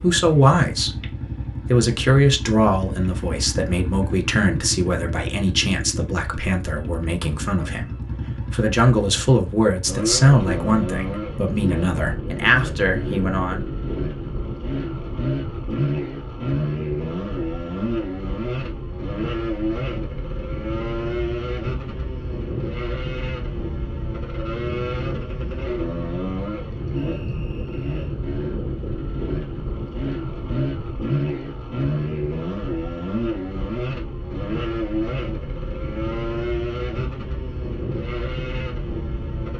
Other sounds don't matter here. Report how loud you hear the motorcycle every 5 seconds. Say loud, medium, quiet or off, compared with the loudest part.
medium, medium, loud, loud, loud, loud, loud, loud.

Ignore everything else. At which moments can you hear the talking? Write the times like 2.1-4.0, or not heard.
0.0-13.7.